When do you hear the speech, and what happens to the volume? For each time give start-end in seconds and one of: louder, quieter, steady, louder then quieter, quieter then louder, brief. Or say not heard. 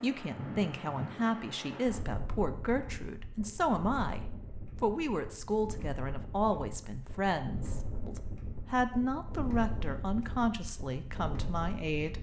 0.0-12.1 steady.